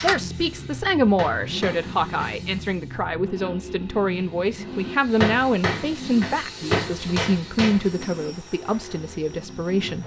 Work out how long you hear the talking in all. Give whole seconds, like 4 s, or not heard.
10 s.